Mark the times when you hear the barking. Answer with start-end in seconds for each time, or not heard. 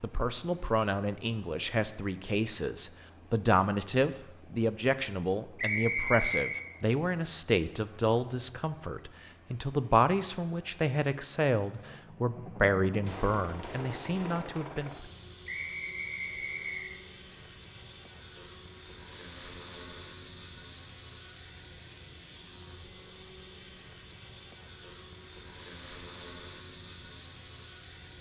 not heard.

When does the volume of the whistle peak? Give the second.
6 s.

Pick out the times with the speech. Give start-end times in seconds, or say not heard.
0.0-15.1.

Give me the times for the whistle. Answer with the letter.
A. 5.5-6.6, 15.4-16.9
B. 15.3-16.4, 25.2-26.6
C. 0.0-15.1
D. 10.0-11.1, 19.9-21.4
A.